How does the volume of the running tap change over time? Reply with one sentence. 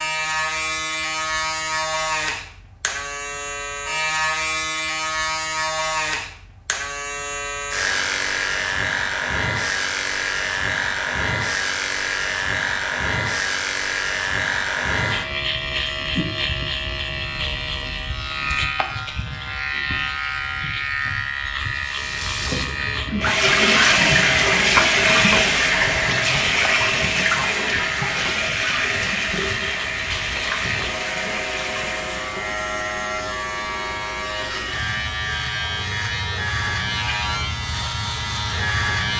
The volume of the running tap goes down.